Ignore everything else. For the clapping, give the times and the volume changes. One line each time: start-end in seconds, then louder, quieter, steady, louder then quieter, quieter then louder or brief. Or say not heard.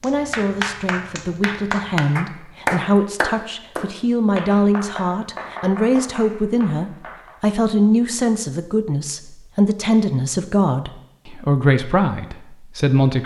0.0-7.3 louder then quieter.